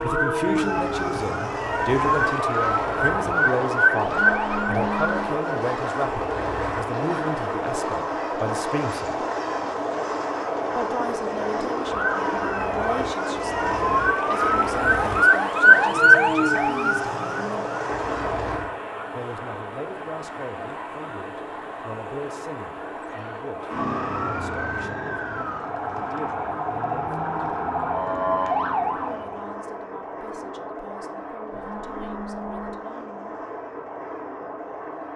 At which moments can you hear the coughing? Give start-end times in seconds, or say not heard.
not heard.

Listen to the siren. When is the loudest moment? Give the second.
16 s.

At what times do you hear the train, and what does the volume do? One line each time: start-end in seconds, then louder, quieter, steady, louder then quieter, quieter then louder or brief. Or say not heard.
0.0-35.1 quieter.